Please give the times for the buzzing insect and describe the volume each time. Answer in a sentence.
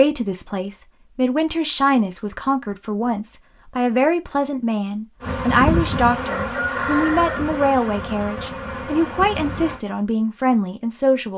You can hear the buzzing insect from 5.2 to 9.8 s, getting quieter.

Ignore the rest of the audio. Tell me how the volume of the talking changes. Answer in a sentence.
The volume of the talking stays about the same.